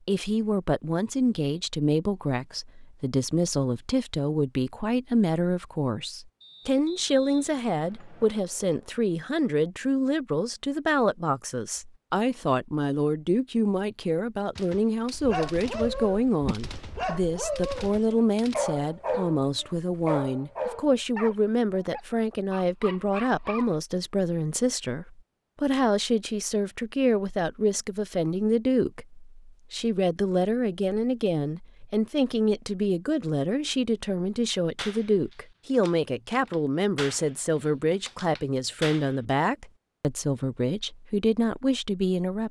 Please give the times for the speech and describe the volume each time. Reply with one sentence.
The speech can be heard from 0.1 to 42.4 s, at a steady volume.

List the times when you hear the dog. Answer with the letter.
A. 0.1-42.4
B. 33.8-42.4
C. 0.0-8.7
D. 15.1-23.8
D.